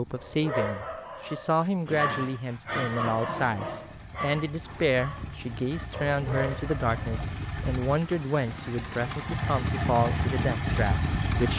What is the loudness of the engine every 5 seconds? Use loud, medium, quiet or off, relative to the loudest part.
quiet, medium, loud.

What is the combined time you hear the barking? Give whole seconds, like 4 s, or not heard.
7 s.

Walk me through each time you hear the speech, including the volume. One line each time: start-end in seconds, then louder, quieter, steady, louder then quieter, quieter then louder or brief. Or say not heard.
0.0-11.5 steady.